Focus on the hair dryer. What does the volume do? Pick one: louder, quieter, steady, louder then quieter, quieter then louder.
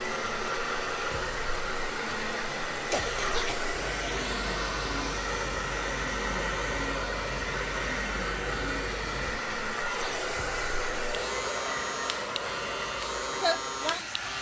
steady.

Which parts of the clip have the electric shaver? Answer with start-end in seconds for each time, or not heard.
0.0-14.3.